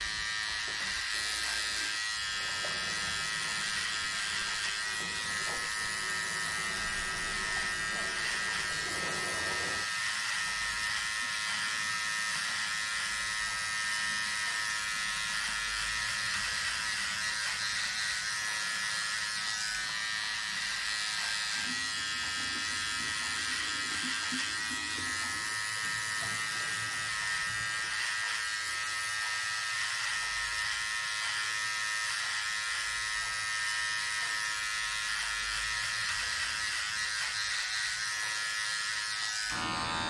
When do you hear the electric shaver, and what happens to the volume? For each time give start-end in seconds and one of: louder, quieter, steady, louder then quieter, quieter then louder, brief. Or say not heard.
0.0-40.0 steady.